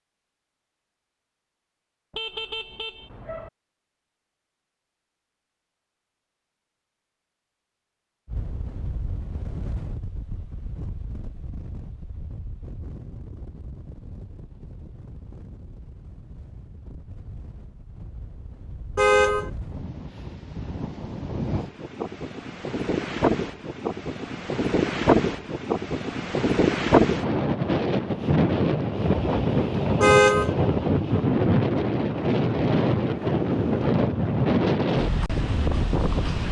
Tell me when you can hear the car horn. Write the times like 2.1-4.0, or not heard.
2.1-3.5, 18.9-19.5, 30.0-30.6.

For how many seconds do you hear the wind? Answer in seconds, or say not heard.
28 s.